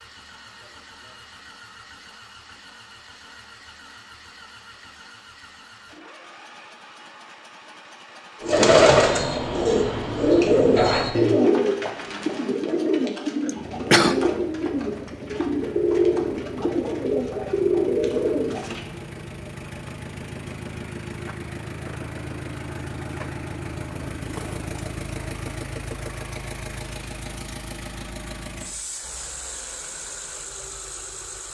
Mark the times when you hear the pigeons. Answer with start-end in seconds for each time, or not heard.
8.4-18.9.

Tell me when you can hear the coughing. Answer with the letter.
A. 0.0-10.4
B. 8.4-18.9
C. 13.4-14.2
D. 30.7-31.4
C.